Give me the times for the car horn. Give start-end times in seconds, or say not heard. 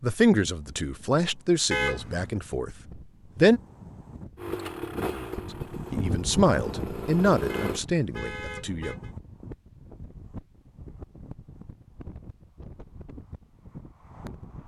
1.7-2.4, 7.5-9.1.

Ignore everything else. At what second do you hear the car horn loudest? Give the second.
2 s.